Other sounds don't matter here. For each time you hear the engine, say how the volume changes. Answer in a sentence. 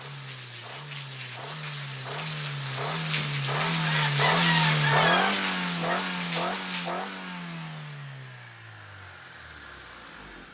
The engine can be heard from 0.0 to 10.4 s, getting louder then quieter.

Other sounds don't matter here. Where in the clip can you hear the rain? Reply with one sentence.
The rain can be heard from 0.0 to 7.0 s.